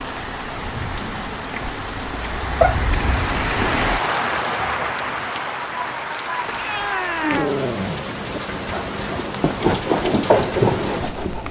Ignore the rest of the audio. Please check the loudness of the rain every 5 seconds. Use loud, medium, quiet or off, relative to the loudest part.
loud, loud, medium.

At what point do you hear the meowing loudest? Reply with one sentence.
The volume of the meowing peaks at 3 seconds.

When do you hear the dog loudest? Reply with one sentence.
The volume of the dog peaks at 10 seconds.